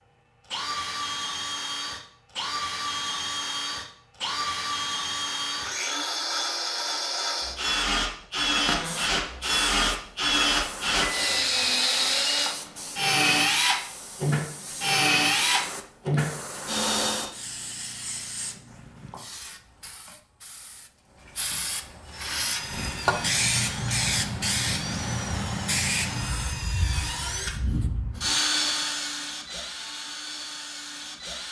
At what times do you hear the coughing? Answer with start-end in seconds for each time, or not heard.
not heard.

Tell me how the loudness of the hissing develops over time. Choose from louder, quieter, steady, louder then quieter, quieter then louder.
louder.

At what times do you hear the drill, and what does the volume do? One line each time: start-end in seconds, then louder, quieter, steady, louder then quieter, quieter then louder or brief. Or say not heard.
0.5-17.3 louder
22.0-31.4 louder then quieter.